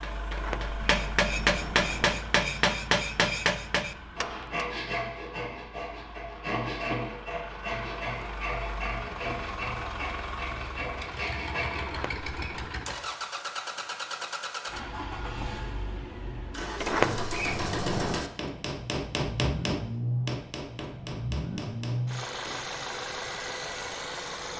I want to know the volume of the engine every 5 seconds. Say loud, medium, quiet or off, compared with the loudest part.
medium, medium, loud, loud, loud.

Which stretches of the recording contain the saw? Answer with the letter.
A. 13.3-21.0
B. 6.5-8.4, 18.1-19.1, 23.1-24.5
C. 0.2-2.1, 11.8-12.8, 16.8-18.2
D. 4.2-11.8
D.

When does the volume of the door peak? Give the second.
17 s.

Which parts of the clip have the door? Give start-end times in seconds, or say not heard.
0.2-2.1, 11.8-12.8, 16.8-18.2.